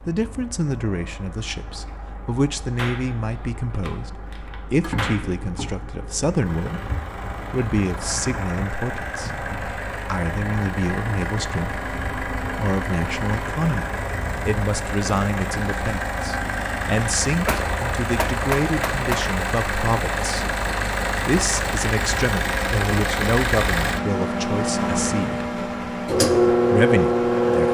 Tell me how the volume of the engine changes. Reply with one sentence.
The loudness of the engine goes up.